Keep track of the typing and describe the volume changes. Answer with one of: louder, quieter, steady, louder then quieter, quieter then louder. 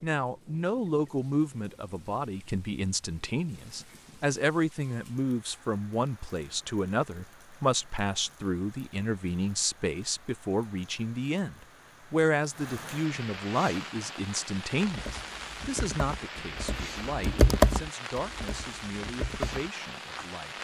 louder then quieter.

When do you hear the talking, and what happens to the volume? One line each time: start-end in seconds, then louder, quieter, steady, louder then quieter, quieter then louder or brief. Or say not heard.
0.0-20.5 quieter.